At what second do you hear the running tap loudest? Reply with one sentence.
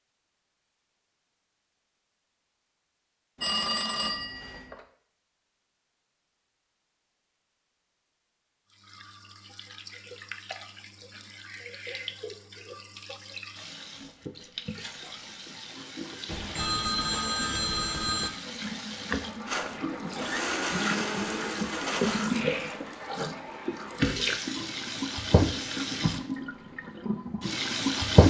The volume of the running tap peaks at 28 seconds.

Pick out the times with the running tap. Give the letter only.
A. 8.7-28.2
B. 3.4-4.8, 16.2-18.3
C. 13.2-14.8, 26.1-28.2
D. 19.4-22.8
A.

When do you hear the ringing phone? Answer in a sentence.
You can hear the ringing phone from 3.4 to 4.8 s and from 16.2 to 18.3 s.